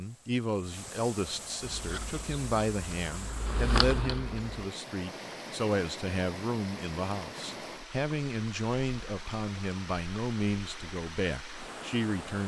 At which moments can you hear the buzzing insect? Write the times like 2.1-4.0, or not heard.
1.6-4.7.